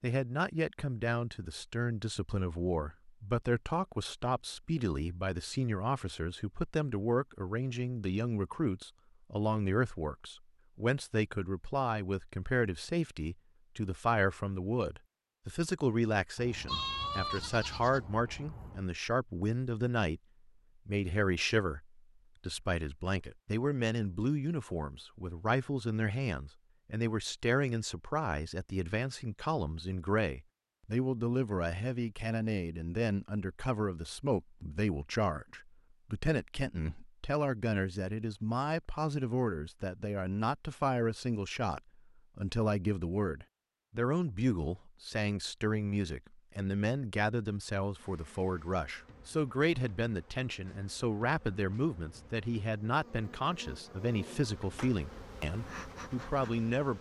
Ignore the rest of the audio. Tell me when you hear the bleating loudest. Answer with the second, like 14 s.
17 s.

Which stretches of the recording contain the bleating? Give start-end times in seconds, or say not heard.
16.4-18.9.